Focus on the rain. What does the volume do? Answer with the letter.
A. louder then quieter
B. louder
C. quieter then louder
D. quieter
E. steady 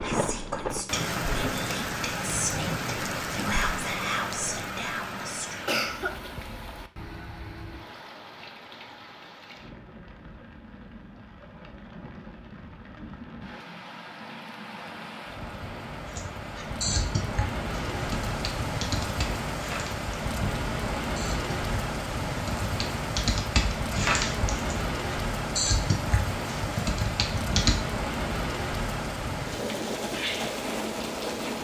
C.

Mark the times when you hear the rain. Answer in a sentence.
The rain can be heard from 0.0 to 31.5 s.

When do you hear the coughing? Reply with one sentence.
The coughing can be heard from 5.7 to 6.3 s.